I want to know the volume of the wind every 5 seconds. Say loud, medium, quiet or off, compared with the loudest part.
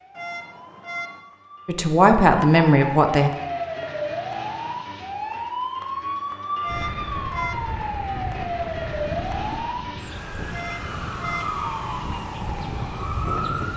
off, loud, loud.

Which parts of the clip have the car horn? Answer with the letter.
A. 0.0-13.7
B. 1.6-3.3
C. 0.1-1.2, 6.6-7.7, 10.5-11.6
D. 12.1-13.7
C.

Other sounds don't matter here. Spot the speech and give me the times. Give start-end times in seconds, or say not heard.
1.6-3.3.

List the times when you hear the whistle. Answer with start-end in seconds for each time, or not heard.
not heard.